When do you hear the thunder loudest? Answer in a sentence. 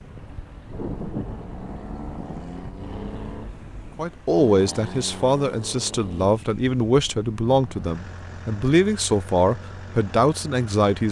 The loudest moment of the thunder is at 1 second.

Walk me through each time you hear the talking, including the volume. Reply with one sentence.
The talking can be heard from 4.0 to 11.0 s, at a steady volume.